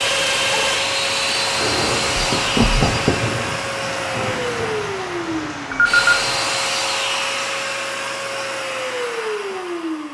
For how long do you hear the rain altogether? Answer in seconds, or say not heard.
7 s.